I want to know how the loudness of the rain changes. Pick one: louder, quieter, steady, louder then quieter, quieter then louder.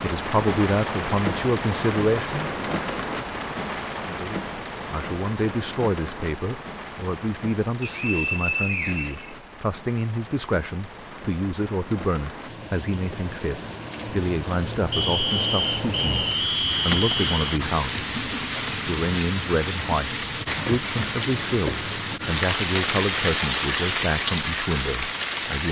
quieter then louder.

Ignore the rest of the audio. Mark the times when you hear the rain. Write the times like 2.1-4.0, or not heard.
0.0-25.6.